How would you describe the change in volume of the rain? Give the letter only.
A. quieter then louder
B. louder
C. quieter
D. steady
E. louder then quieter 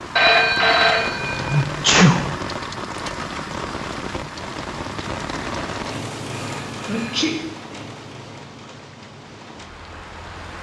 C.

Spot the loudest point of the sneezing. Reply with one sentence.
The volume of the sneezing peaks at 2 seconds.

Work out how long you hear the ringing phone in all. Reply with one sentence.
You can hear the ringing phone for 3 seconds altogether.